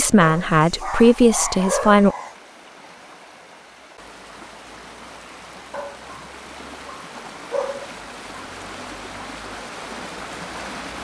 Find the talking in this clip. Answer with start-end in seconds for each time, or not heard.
0.0-2.1.